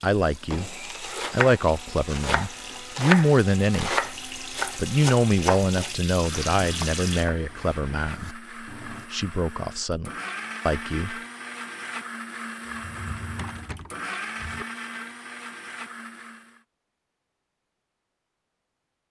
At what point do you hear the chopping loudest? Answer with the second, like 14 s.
3 s.